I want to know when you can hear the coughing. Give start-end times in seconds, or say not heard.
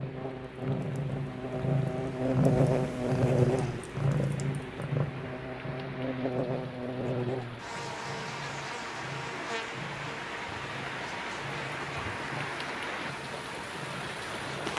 not heard.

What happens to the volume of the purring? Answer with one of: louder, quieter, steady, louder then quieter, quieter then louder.
quieter.